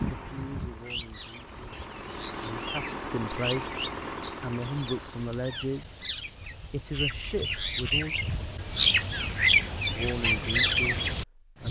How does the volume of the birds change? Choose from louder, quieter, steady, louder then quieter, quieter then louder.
louder.